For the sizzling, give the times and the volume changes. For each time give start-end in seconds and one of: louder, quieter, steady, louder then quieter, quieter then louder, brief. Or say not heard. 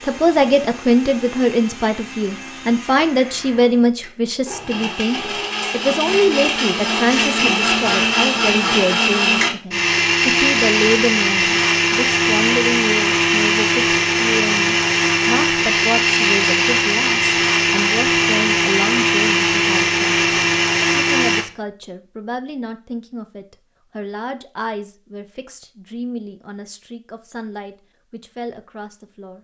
not heard.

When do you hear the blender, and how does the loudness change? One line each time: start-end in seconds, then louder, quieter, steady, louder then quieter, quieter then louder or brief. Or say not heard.
0.0-21.4 louder.